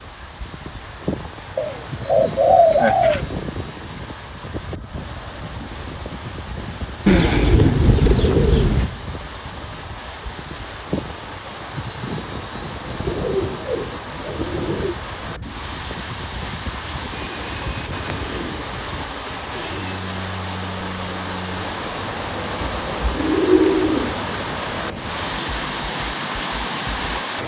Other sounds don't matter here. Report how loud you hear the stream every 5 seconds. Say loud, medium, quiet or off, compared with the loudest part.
quiet, medium, medium, medium, loud, loud.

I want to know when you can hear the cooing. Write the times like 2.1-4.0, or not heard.
1.6-3.3, 7.0-8.9, 13.1-14.9, 17.1-19.9, 22.6-24.1.